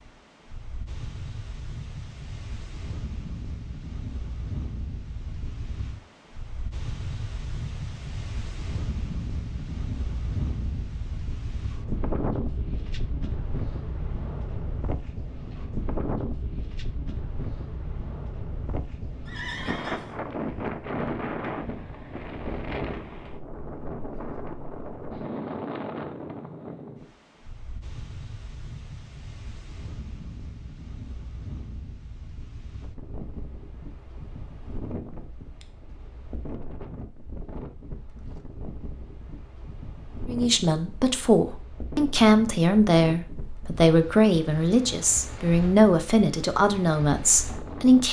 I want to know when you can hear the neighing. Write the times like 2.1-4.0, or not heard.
19.2-20.2.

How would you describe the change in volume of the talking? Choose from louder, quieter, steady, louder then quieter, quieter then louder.
steady.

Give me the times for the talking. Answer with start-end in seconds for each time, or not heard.
40.2-48.0.